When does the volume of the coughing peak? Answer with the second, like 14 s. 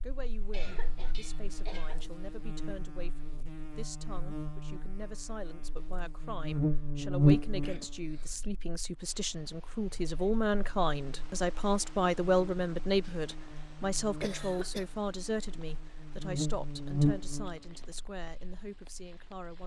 14 s.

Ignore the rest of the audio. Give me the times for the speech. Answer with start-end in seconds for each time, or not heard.
0.0-19.6.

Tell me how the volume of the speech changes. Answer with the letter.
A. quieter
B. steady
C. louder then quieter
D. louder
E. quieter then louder
C.